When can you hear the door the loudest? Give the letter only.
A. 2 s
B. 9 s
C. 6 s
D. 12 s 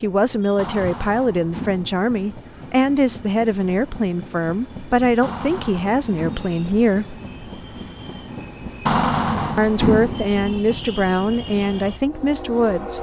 B.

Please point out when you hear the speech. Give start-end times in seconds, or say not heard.
0.0-7.2, 9.6-12.9.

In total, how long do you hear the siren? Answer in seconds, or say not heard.
not heard.